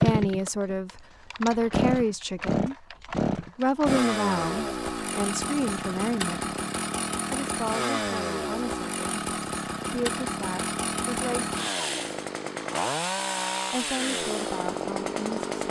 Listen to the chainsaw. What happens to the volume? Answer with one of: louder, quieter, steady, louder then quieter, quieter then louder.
steady.